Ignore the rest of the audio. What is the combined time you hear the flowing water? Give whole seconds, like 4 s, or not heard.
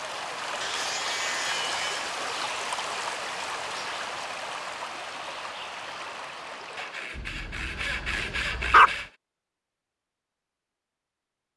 7 s.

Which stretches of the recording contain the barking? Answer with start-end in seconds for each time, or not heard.
7.2-8.9.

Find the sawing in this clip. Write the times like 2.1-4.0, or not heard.
0.6-2.1, 6.8-9.1.